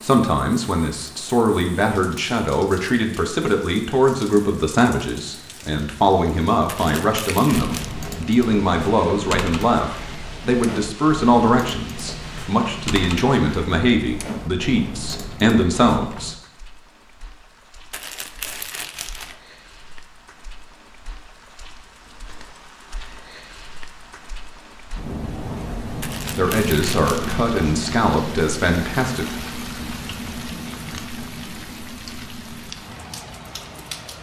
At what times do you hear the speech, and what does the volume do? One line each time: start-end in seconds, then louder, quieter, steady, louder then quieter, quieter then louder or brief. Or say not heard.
0.0-16.4 steady
26.3-29.2 brief.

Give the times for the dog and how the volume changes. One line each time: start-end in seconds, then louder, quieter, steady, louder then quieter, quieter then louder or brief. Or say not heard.
not heard.